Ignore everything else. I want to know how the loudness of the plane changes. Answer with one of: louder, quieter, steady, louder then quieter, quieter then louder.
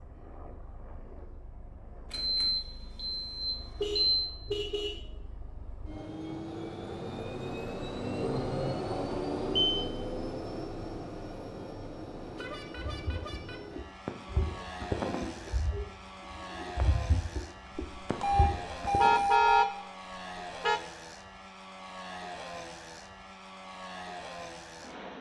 louder then quieter.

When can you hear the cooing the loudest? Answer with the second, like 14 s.
15 s.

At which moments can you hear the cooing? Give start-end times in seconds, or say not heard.
12.8-19.3.